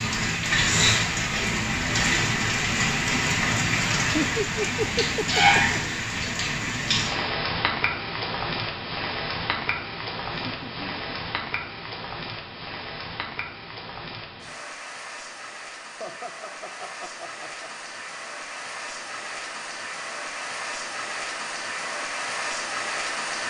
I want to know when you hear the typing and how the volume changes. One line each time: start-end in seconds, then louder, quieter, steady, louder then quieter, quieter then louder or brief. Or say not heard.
not heard.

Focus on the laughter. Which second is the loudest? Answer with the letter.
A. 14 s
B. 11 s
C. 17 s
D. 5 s
D.